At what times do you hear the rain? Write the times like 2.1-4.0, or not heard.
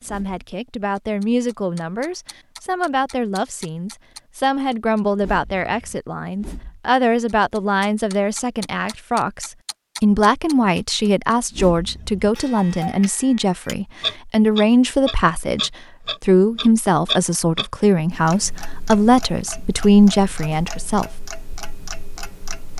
not heard.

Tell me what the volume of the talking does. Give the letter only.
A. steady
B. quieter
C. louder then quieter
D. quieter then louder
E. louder
E.